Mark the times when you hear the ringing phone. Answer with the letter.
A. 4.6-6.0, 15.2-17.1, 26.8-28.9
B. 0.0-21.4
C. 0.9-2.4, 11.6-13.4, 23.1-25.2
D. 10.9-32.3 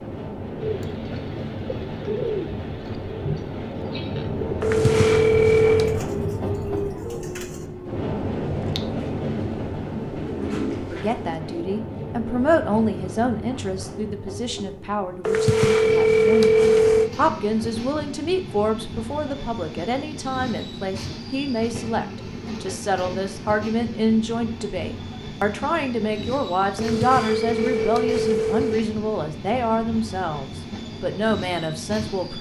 A.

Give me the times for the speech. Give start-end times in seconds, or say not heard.
10.9-32.3.